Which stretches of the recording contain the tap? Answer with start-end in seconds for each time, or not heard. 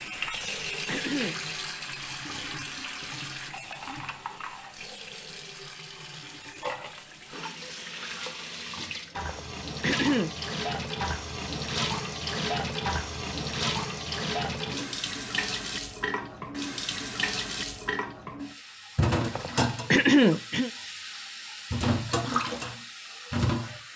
0.0-23.9.